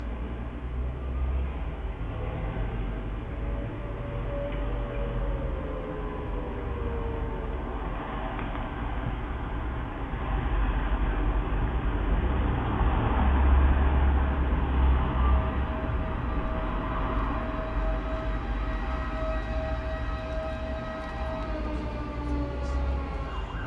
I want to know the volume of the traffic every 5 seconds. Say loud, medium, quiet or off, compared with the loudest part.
medium, medium, loud, loud, medium.